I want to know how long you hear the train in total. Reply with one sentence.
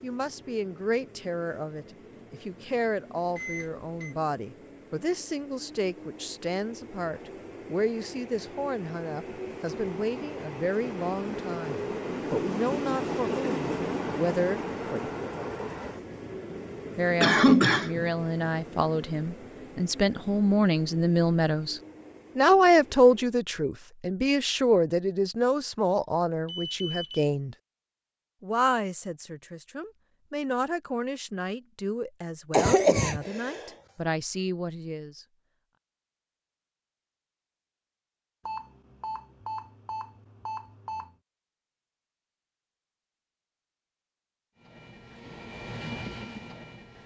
You can hear the train for 26 seconds altogether.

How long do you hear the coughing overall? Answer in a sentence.
The coughing can be heard for 2 seconds in total.